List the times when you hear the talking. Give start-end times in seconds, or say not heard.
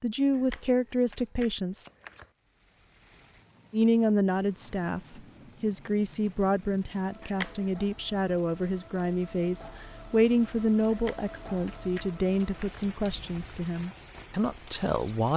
0.0-1.9, 3.7-15.3.